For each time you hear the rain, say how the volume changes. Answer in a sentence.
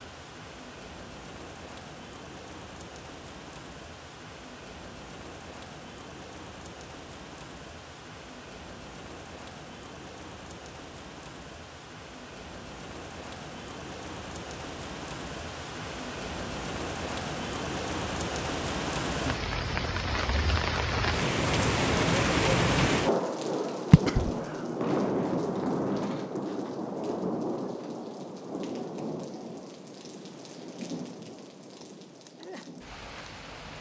You can hear the rain from 0.0 to 33.7 s, getting louder then quieter.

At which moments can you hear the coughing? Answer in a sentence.
The coughing can be heard from 23.9 to 24.3 s.